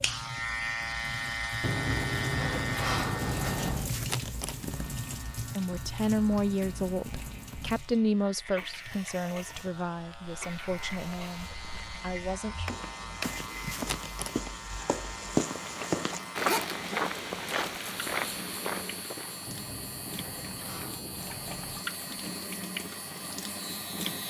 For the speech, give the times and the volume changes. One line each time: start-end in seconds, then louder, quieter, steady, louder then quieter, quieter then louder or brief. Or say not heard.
5.5-12.7 quieter.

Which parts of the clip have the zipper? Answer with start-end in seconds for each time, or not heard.
3.4-5.0, 13.2-14.4, 16.4-17.9.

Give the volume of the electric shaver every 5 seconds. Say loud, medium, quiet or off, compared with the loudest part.
loud, quiet, medium, medium, medium.